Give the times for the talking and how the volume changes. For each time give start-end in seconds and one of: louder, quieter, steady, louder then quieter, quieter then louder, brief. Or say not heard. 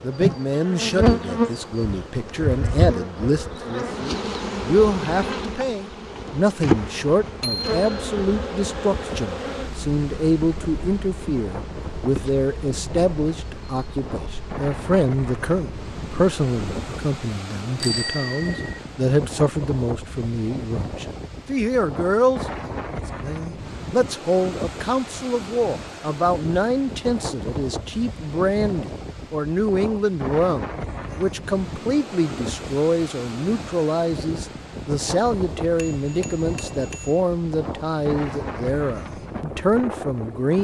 0.0-22.4 steady
23.2-40.5 steady.